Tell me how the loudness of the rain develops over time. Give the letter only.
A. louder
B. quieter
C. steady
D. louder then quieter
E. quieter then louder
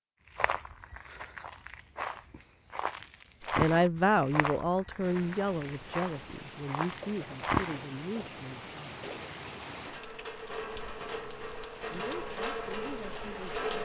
A.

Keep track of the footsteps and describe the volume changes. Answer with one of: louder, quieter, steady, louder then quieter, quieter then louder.
louder then quieter.